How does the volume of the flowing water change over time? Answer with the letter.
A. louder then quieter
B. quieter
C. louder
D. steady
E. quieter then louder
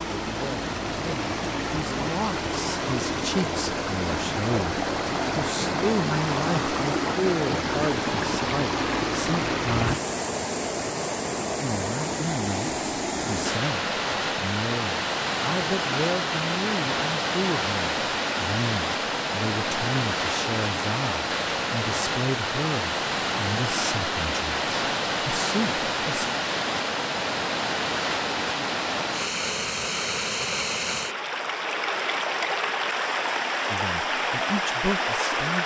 D.